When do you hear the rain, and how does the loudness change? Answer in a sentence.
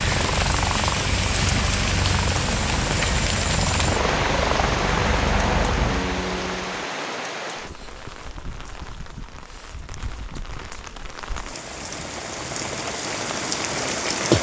The rain can be heard from 0.0 to 14.3 s, getting quieter then louder.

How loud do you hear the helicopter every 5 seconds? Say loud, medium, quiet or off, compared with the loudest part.
loud, loud, off.